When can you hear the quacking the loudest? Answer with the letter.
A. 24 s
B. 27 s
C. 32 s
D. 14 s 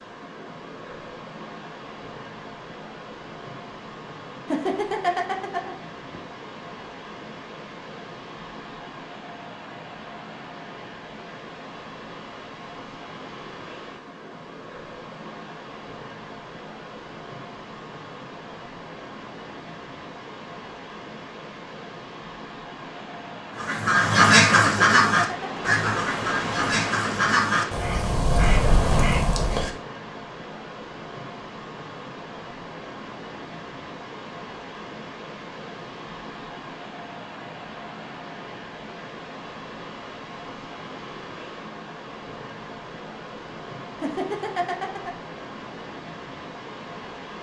A.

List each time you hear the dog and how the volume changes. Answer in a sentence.
The dog can't be heard in this clip.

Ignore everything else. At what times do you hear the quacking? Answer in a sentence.
You can hear the quacking from 23.6 to 29.7 s.